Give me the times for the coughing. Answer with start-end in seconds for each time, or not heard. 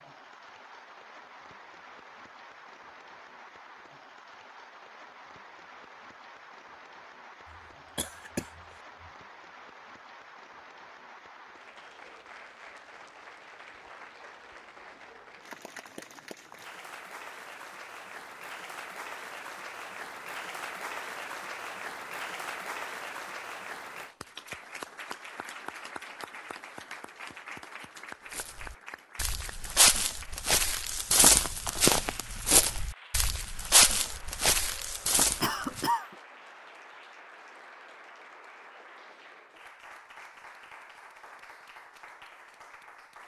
7.5-9.1, 35.4-36.1.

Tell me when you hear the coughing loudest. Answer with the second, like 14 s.
36 s.